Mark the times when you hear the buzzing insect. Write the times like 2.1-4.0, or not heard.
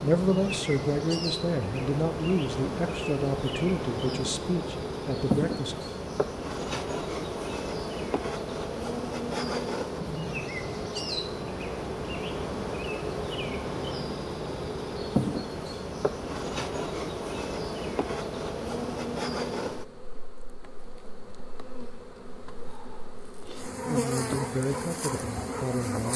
0.0-26.1.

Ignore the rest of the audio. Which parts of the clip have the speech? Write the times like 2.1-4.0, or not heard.
0.0-5.8, 23.9-26.1.